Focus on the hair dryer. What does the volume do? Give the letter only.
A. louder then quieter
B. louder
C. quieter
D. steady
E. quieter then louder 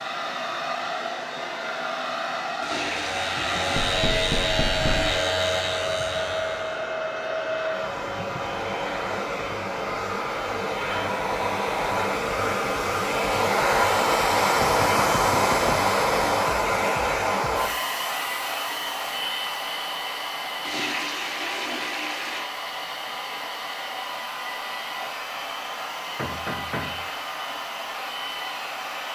A.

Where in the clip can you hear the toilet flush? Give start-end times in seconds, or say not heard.
2.6-5.3, 20.6-22.5.